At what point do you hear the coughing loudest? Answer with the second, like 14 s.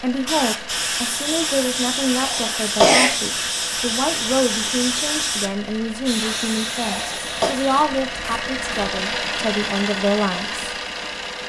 3 s.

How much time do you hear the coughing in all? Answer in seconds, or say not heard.
2 s.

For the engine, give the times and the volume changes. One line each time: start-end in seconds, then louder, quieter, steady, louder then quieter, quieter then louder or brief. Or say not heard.
0.0-11.4 louder.